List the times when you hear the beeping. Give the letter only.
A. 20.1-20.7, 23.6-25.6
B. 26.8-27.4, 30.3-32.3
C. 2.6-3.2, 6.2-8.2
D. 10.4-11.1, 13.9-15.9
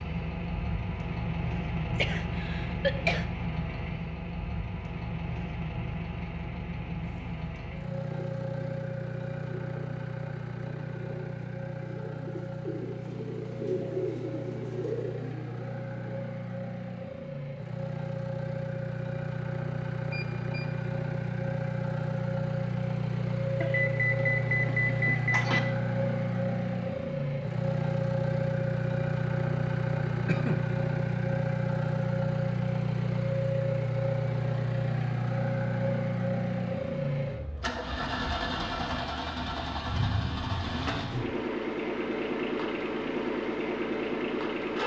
A.